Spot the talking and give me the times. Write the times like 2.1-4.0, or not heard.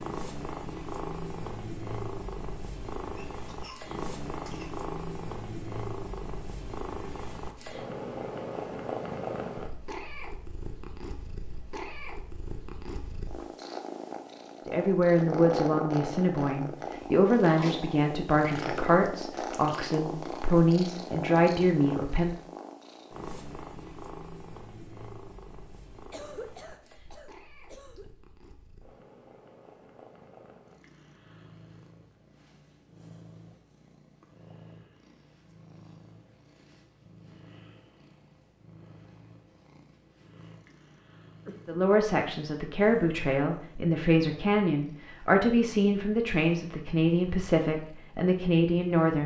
14.7-22.4, 41.6-49.2.